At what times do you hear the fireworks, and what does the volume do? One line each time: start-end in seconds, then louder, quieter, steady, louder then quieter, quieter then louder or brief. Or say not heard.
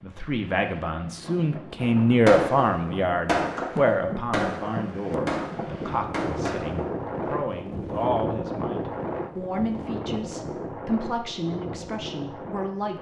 1.8-6.9 quieter.